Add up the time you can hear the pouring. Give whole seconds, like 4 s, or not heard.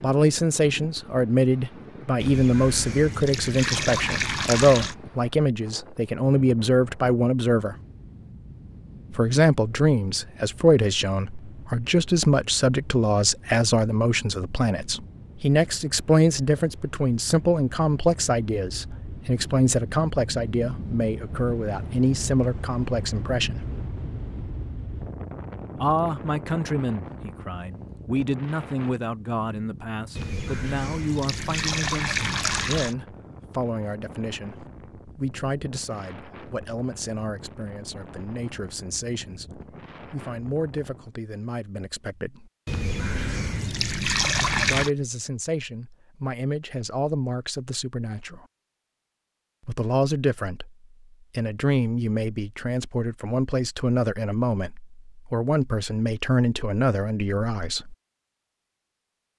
8 s.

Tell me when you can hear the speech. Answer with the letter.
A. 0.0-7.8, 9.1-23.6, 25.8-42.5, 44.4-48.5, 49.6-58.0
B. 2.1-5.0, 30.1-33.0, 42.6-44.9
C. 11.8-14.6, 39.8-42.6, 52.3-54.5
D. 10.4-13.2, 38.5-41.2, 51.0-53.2
A.